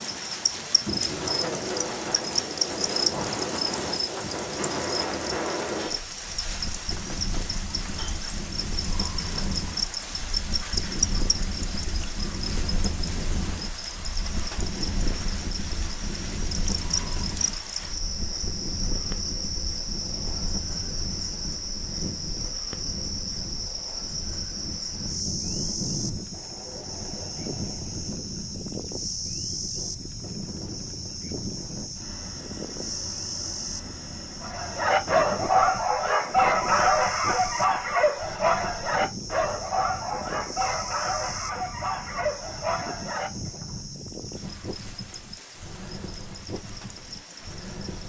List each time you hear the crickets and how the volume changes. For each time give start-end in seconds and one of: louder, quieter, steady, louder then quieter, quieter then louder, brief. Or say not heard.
0.0-48.0 quieter.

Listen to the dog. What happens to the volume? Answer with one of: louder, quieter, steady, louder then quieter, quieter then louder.
quieter.